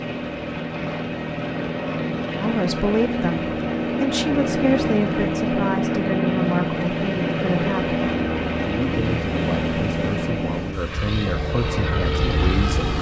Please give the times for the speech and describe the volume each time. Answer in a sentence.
You can hear the speech from 2.4 to 12.9 s, getting quieter.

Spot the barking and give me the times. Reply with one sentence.
The barking can't be heard in this clip.